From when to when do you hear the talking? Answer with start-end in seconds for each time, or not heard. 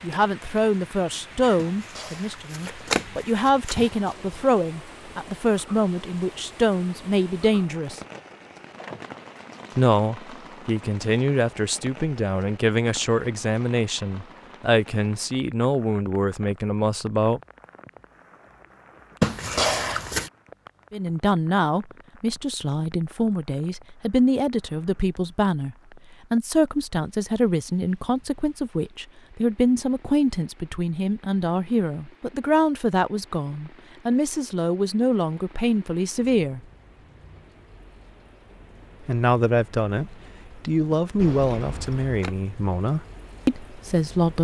0.0-8.0, 9.8-17.4, 20.9-36.6, 39.0-44.3.